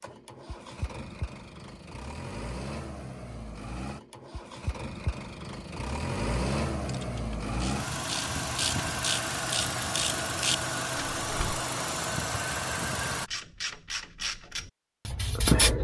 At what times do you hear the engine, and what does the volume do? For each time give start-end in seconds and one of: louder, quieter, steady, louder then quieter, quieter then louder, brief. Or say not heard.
0.0-13.3 louder.